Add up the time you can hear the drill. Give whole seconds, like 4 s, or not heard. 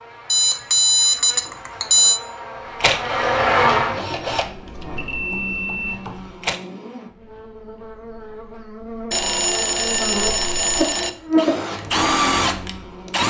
6 s.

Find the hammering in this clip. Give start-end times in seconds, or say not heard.
not heard.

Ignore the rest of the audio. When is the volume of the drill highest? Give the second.
12 s.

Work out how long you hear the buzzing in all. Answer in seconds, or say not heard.
13 s.